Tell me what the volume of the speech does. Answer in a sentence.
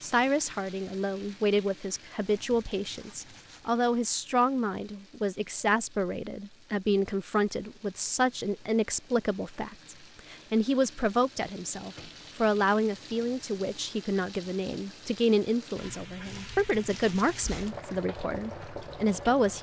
The loudness of the speech stays about the same.